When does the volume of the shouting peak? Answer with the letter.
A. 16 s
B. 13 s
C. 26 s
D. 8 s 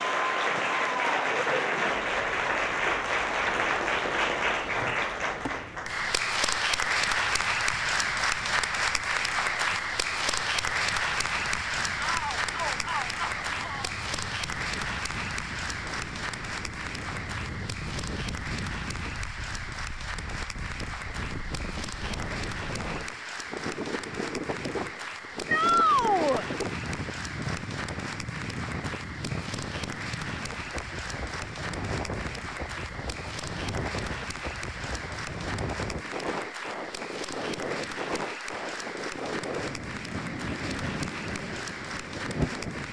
C.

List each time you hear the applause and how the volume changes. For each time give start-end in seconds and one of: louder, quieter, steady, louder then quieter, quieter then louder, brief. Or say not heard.
0.0-42.8 quieter.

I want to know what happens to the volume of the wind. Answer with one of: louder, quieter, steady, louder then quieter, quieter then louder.
louder.